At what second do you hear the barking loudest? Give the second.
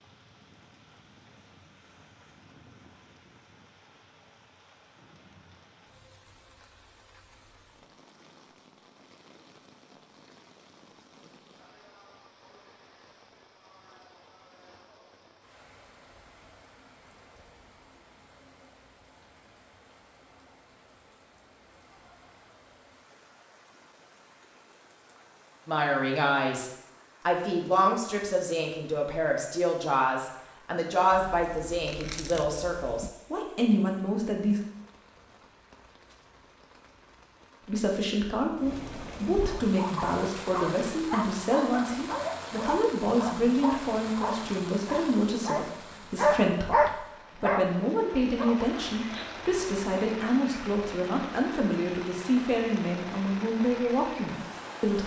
47 s.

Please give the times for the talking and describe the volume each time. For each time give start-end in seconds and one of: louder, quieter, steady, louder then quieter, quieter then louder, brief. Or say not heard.
25.6-34.6 steady
37.6-55.0 steady.